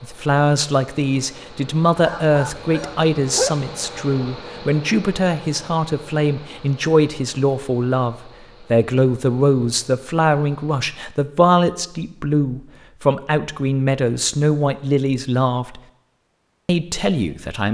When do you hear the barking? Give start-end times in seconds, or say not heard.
1.9-3.5.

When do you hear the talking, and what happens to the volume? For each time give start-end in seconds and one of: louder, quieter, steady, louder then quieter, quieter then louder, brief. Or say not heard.
0.0-15.8 steady
16.6-17.6 brief.